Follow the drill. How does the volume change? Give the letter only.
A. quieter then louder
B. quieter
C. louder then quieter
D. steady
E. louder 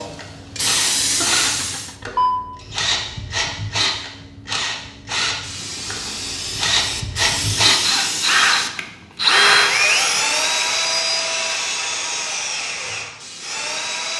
C.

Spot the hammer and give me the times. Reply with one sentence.
You can't hear the hammer here.